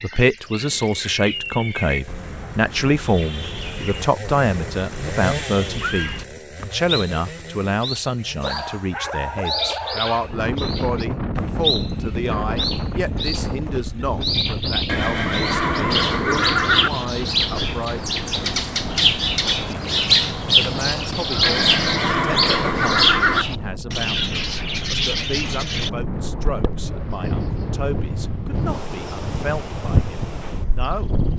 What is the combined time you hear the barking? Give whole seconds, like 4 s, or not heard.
2 s.